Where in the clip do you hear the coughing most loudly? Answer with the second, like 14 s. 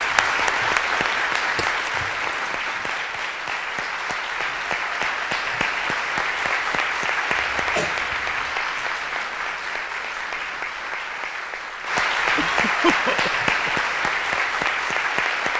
13 s.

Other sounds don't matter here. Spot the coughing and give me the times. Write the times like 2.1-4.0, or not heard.
1.6-2.7, 7.3-8.6, 12.3-13.8.